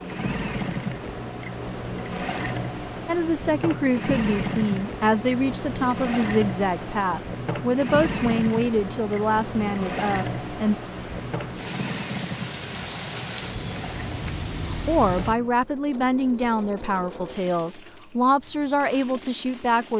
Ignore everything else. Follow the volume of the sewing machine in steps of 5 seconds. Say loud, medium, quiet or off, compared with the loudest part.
loud, loud, loud, medium.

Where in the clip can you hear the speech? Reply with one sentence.
You can hear the speech from 3.0 to 10.8 s and from 14.7 to 19.9 s.